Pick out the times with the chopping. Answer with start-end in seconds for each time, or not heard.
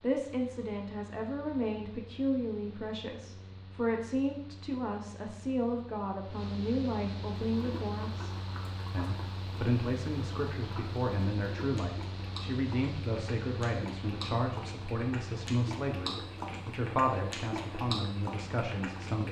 not heard.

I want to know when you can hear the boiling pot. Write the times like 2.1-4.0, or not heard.
7.5-19.2.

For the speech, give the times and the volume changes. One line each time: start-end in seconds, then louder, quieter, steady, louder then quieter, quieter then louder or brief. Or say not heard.
0.0-19.2 steady.